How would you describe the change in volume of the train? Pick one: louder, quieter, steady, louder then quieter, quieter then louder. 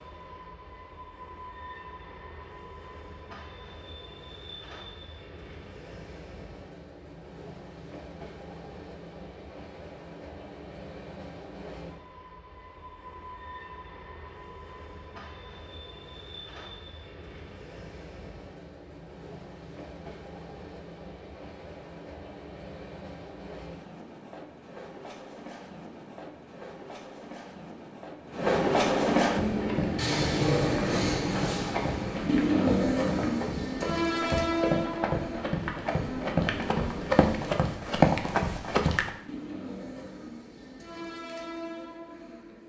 louder then quieter.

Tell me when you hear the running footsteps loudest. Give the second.
38 s.